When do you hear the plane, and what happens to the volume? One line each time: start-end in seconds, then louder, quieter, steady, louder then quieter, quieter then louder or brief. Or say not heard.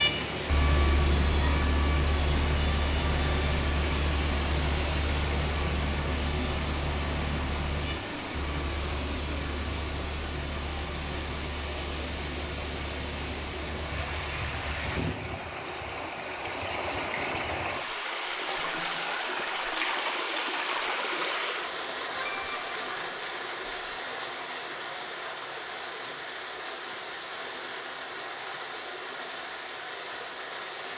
0.0-14.8 quieter.